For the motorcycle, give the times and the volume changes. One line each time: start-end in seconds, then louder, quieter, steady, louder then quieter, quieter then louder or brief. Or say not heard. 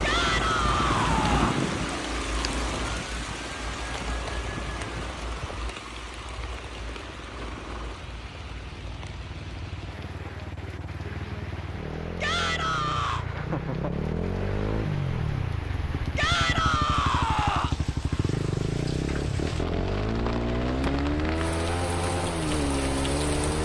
0.0-23.6 quieter then louder.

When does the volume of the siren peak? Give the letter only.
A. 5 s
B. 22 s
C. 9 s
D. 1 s
D.